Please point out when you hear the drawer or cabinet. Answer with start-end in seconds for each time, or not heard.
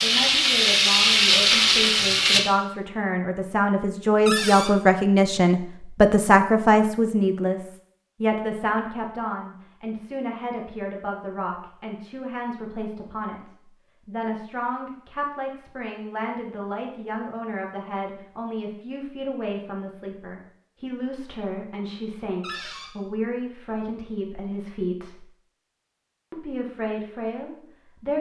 4.2-4.8, 22.4-22.9.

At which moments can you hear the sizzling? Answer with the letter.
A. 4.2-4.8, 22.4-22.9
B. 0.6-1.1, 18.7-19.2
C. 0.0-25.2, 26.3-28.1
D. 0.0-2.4
D.